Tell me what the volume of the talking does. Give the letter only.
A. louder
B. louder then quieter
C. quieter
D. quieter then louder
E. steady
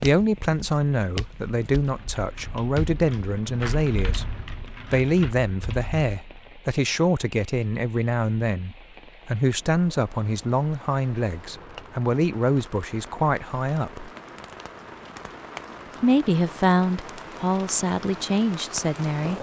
E.